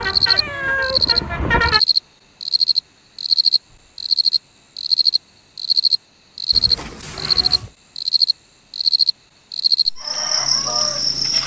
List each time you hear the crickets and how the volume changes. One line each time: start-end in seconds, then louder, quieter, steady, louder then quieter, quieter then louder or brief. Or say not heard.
0.0-11.4 steady.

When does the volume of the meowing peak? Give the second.
1 s.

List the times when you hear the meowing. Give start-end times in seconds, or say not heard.
0.3-1.1, 6.5-7.7.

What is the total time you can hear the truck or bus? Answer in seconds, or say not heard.
2 s.